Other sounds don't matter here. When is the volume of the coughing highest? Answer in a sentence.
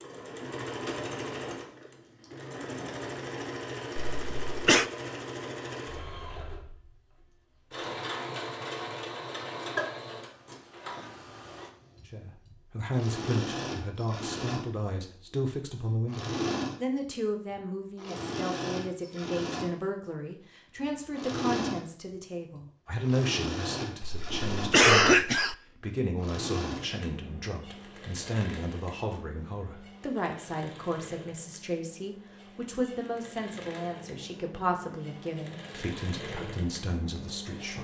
The loudest moment of the coughing is at 25 seconds.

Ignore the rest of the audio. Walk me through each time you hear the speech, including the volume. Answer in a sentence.
The speech can be heard from 12.1 to 37.7 s, at a steady volume.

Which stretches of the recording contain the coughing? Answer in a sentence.
You can hear the coughing from 4.0 to 4.8 s and from 24.0 to 25.6 s.